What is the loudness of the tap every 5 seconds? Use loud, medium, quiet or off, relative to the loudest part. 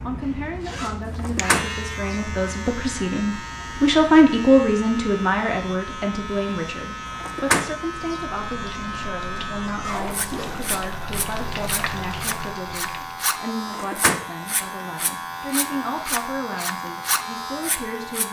off, medium, loud, off.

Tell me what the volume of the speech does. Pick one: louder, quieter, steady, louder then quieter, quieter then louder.
louder then quieter.